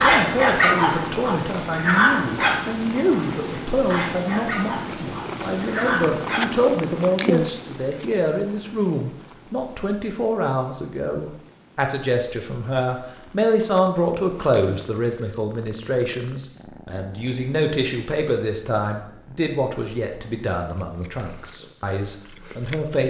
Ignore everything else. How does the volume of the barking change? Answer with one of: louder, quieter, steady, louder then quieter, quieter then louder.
quieter then louder.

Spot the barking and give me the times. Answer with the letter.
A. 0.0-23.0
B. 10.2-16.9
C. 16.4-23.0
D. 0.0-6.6
D.